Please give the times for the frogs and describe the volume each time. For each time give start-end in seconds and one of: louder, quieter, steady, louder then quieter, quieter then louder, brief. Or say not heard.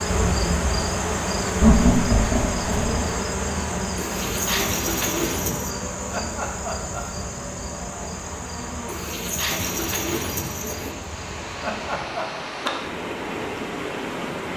not heard.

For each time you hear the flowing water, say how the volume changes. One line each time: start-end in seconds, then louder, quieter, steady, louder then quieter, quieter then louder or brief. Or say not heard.
0.0-14.5 quieter then louder.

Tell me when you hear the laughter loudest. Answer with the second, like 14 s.
2 s.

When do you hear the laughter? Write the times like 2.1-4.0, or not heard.
1.6-3.1, 6.1-7.2, 11.6-12.3.